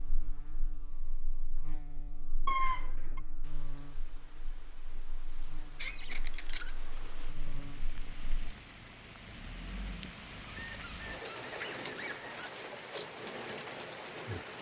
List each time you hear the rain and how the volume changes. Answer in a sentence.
The rain can be heard from 3.4 to 14.5 s, getting louder.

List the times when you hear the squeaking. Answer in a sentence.
The squeaking can be heard from 2.5 to 3.2 s, from 5.8 to 6.8 s and from 10.4 to 12.5 s.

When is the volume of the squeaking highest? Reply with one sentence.
The loudest moment of the squeaking is at 3 seconds.